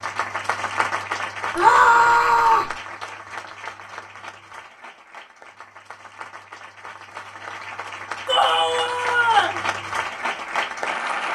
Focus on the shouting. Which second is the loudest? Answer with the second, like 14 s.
2 s.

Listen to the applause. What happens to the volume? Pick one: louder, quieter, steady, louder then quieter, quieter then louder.
quieter then louder.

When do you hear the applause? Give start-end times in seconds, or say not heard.
0.0-11.2.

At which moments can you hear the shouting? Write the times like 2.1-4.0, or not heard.
1.6-2.8, 8.2-9.6.